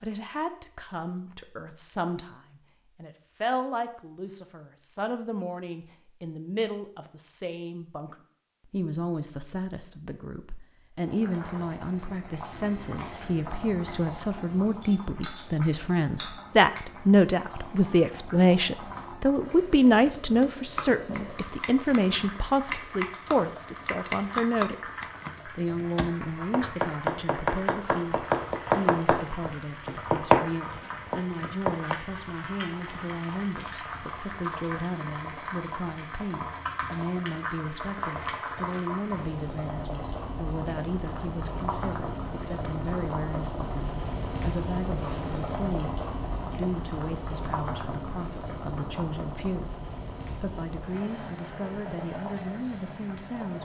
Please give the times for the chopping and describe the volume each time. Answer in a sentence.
The chopping can be heard from 20.3 to 31.9 s, getting louder.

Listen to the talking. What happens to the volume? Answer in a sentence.
The volume of the talking goes up, then down.